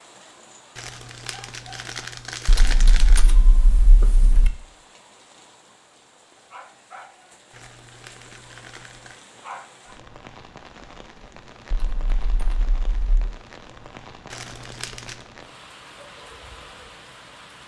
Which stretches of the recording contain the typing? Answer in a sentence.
You can hear the typing from 2.5 to 4.5 s and from 11.7 to 13.3 s.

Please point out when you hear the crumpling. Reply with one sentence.
You can hear the crumpling from 0.8 to 3.3 s, from 7.5 to 9.2 s and from 14.3 to 15.3 s.